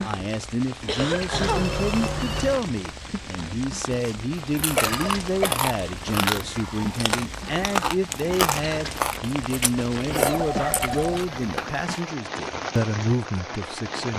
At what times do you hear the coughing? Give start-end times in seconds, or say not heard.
0.8-1.7, 4.8-5.6, 10.2-11.8.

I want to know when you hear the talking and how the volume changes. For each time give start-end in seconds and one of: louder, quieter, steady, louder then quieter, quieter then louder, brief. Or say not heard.
0.0-14.1 steady.